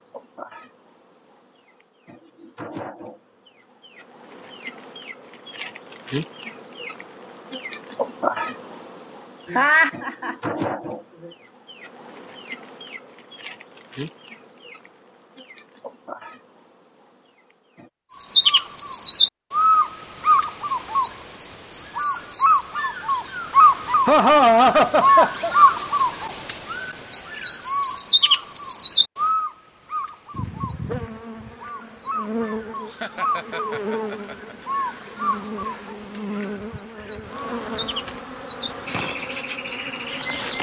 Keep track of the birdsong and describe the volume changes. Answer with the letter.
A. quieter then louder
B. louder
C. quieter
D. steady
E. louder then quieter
C.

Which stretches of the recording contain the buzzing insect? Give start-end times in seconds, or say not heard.
0.0-17.9, 30.3-40.5.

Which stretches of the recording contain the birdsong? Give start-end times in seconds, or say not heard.
18.2-40.5.